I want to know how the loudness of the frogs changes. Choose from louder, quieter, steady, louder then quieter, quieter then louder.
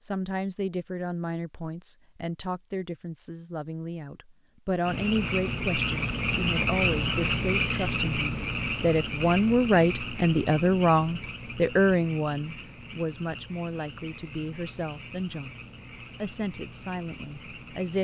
quieter.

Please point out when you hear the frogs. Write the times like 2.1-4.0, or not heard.
4.8-17.9.